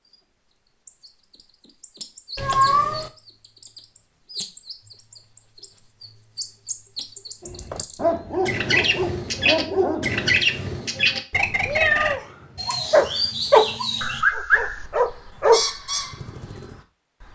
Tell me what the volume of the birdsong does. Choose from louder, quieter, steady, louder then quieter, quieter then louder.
louder then quieter.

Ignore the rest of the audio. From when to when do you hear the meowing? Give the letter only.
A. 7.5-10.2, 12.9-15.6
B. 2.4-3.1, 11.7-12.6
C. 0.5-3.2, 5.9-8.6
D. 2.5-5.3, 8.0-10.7
B.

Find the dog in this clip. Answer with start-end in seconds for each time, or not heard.
7.5-10.2, 12.9-15.6.